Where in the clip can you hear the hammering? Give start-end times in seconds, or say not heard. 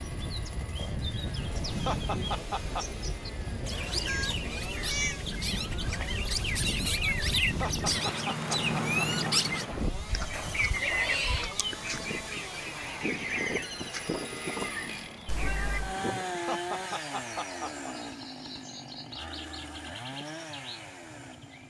not heard.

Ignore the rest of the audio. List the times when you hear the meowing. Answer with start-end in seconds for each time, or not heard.
4.0-5.2, 10.3-11.6, 15.2-15.9.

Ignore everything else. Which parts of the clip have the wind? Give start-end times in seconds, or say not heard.
0.0-16.4.